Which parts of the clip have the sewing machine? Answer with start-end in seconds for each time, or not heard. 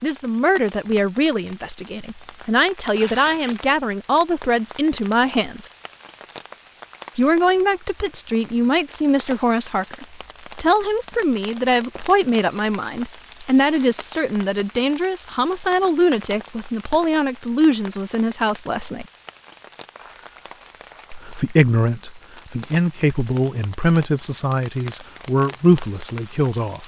not heard.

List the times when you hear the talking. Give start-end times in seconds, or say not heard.
0.0-5.7, 7.2-19.1, 21.1-26.8.